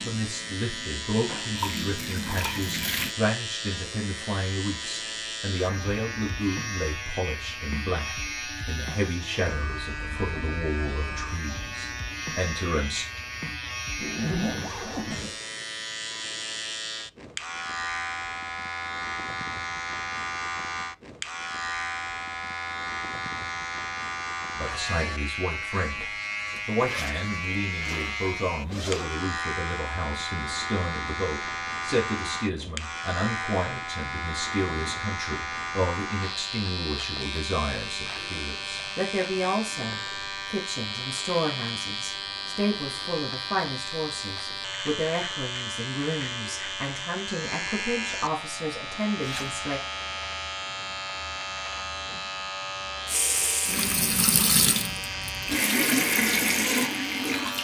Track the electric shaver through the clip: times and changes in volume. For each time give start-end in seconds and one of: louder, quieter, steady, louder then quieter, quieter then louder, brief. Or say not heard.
0.0-57.5 steady.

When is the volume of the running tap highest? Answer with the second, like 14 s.
56 s.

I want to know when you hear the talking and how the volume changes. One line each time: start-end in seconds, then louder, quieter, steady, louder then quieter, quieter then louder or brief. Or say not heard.
0.0-13.1 steady
24.6-49.8 steady.